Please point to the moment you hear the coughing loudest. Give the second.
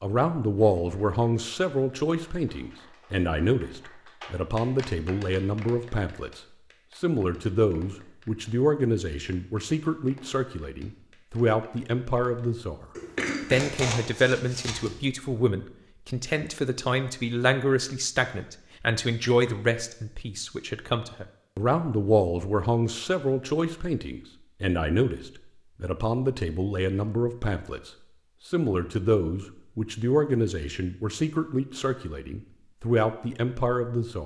13 s.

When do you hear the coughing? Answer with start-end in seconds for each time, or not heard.
12.9-14.9.